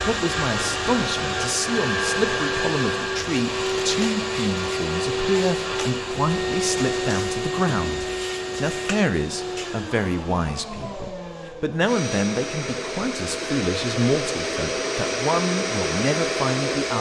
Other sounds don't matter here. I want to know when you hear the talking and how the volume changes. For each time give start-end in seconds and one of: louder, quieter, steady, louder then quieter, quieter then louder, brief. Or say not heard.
0.0-16.9 steady.